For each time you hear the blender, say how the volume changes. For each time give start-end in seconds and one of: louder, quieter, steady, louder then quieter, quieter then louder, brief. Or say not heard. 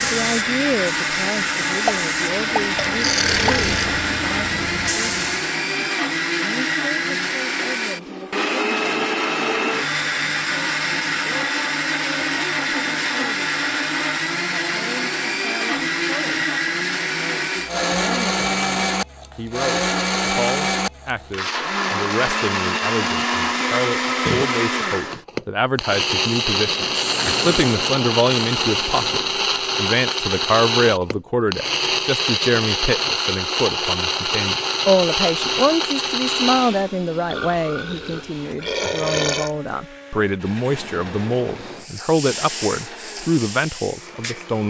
0.0-44.6 quieter.